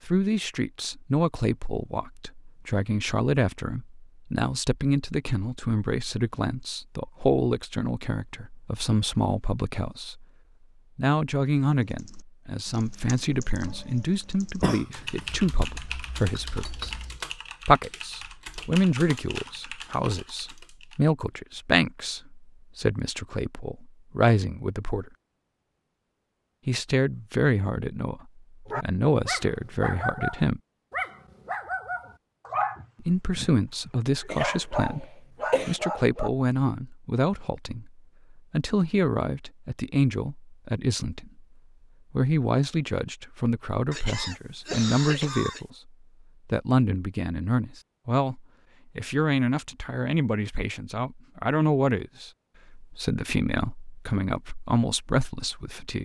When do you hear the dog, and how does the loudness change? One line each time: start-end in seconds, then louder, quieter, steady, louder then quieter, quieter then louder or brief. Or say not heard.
28.6-36.3 steady.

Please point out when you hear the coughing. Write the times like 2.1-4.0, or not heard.
14.6-15.3, 34.2-35.8, 43.9-45.6.